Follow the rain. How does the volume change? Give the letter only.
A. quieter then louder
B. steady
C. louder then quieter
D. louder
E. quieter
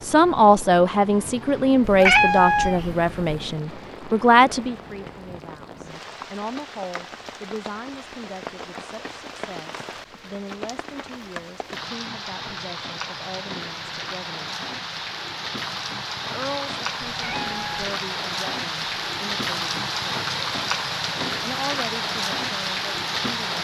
D.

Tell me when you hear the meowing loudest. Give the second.
2 s.